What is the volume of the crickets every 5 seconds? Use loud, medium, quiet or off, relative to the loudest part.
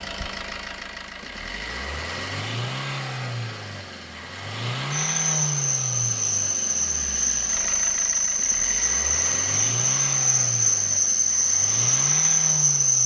off, loud, loud.